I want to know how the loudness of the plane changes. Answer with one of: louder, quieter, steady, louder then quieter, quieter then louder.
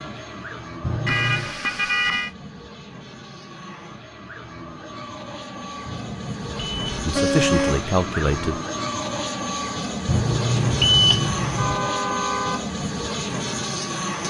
louder.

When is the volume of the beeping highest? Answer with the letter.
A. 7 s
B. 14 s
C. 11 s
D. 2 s
C.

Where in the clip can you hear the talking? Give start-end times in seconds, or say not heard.
7.0-8.6.